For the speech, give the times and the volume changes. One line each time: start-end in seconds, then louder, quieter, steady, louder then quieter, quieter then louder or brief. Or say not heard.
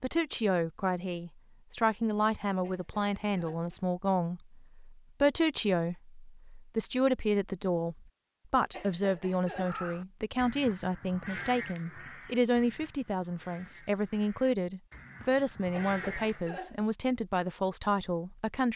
0.0-18.7 steady.